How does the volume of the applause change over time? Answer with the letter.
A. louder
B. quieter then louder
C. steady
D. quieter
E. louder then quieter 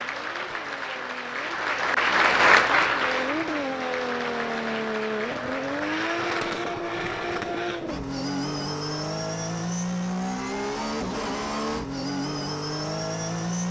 E.